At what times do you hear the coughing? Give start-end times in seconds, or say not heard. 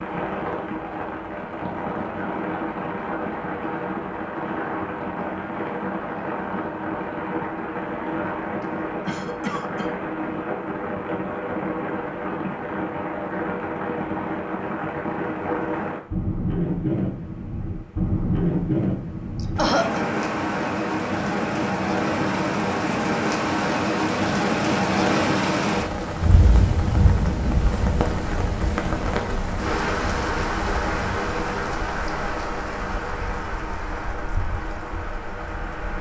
9.1-9.8, 19.4-20.1.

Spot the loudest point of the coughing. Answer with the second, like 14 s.
20 s.